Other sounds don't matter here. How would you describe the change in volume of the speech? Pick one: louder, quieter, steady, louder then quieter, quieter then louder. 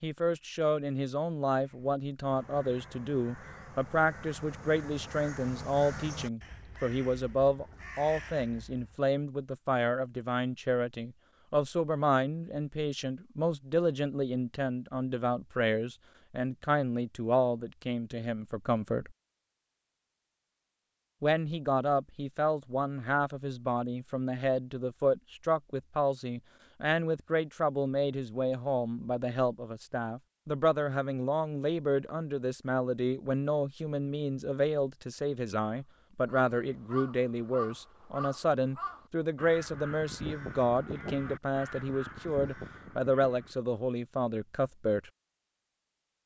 steady.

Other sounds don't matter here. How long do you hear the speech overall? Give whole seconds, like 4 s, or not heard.
43 s.